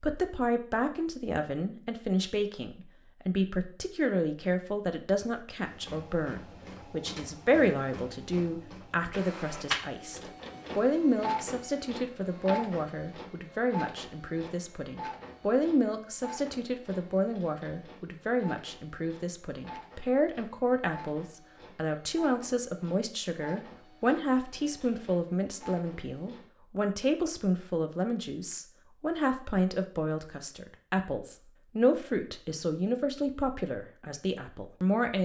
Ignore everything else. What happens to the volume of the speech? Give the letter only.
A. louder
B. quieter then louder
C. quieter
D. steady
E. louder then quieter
D.